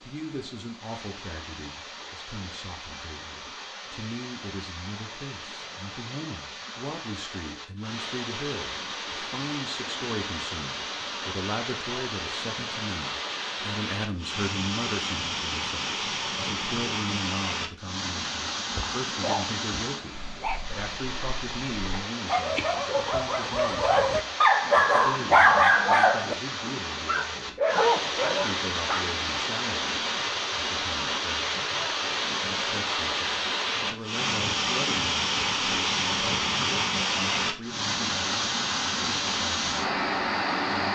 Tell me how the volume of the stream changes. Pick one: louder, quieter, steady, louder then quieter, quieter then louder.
louder.